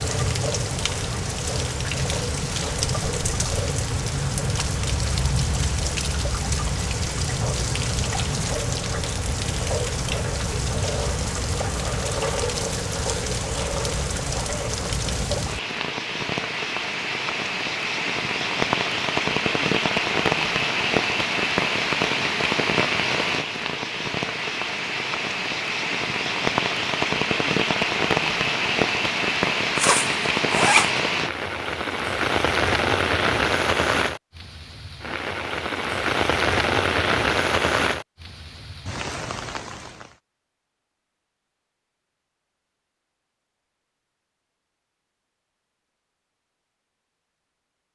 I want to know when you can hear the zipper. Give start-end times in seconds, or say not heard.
29.8-31.0.